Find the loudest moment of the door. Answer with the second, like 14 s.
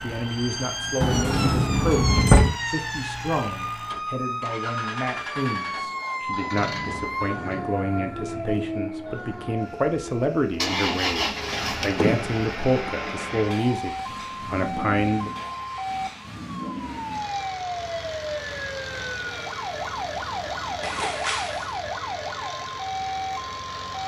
2 s.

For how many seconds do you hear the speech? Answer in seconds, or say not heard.
15 s.